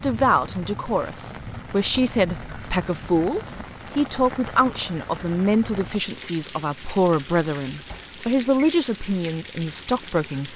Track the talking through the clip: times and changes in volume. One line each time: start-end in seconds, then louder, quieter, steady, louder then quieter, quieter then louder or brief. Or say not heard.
0.0-10.5 steady.